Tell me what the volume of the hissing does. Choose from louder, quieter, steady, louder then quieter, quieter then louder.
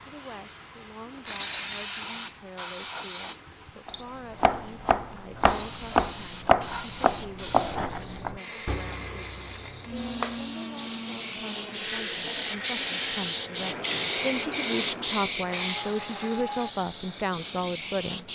quieter then louder.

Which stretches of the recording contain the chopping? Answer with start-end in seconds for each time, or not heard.
3.9-10.6.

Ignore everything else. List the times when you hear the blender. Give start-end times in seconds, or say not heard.
8.3-16.7.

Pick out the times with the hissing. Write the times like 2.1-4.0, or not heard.
0.2-18.3.